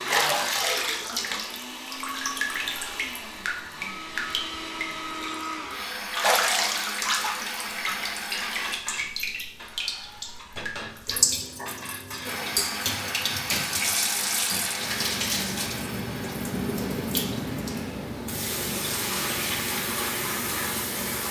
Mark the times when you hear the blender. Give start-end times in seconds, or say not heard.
0.0-8.8, 12.2-18.1.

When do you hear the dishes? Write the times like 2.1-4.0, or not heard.
7.7-12.8.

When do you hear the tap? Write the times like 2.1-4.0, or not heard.
0.1-21.2.